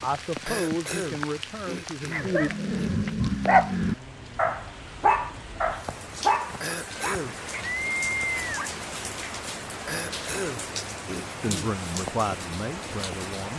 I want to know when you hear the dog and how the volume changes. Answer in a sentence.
The dog can be heard from 2.1 to 8.7 s, getting quieter.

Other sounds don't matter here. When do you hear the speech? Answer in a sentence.
The speech can be heard from 0.0 to 2.5 s and from 11.4 to 13.5 s.